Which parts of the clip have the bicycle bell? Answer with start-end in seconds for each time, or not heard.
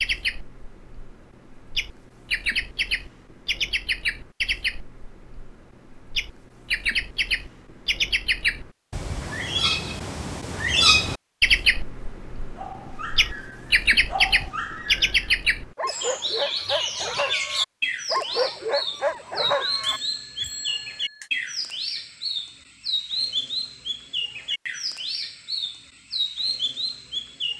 19.6-21.3.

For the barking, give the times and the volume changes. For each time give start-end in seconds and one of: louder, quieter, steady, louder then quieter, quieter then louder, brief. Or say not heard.
12.6-20.5 louder.